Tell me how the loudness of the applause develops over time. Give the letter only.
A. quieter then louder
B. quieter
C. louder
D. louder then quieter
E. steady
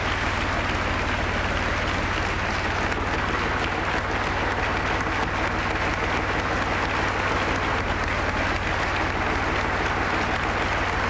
E.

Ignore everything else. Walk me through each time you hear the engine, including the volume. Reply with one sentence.
The engine can be heard from 0.0 to 11.0 s, at a steady volume.